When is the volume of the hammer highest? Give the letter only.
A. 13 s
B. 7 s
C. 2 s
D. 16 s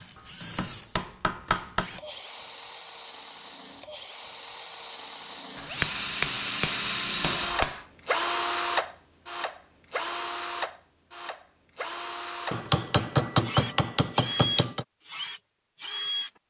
A.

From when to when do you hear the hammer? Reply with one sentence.
The hammer can be heard from 0.6 to 1.9 s, from 5.5 to 7.8 s and from 12.5 to 14.8 s.